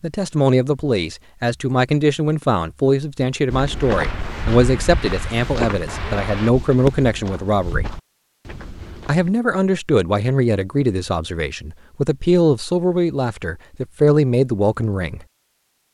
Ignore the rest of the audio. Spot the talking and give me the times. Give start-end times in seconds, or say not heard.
0.0-8.0, 9.1-15.2.